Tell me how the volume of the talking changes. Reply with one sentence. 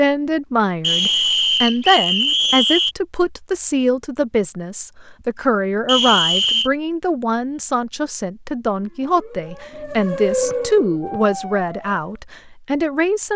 The volume of the talking stays about the same.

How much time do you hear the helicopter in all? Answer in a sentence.
You can't hear the helicopter here.